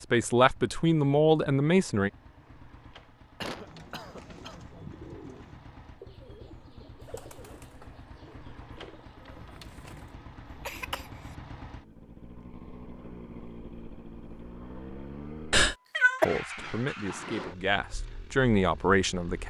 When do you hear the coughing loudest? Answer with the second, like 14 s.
16 s.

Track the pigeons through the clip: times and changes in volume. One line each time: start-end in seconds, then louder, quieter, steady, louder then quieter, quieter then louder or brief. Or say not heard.
3.5-10.2 quieter.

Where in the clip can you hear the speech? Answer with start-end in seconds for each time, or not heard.
0.1-2.1, 16.2-19.4.